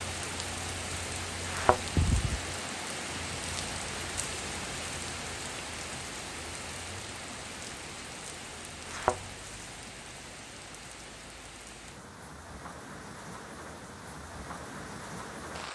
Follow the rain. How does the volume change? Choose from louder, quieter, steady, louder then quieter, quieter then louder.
quieter.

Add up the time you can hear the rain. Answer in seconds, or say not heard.
16 s.